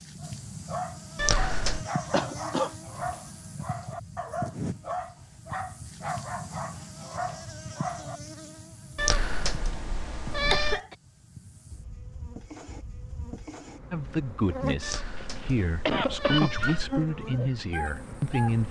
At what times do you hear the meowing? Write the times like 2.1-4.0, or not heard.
1.1-1.9, 8.9-10.8, 14.8-16.9.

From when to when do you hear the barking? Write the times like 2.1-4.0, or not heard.
0.2-8.2, 16.6-18.6.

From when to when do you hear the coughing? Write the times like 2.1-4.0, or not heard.
2.1-2.7, 10.3-10.9, 15.3-16.8.